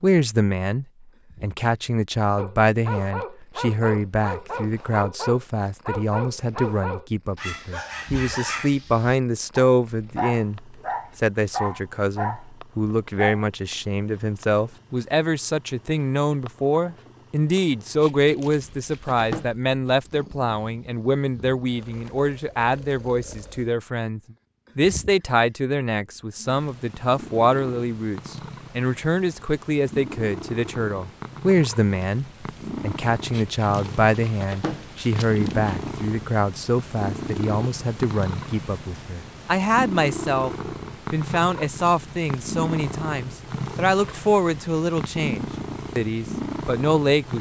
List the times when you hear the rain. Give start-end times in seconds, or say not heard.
not heard.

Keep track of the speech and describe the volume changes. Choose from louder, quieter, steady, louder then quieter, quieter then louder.
steady.